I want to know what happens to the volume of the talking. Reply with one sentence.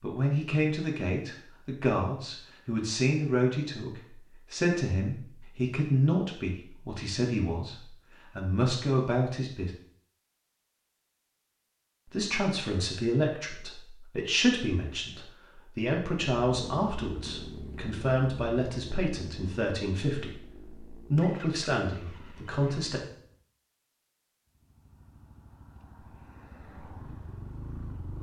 The loudness of the talking stays about the same.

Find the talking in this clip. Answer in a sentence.
The talking can be heard from 0.0 to 9.7 s and from 12.1 to 23.0 s.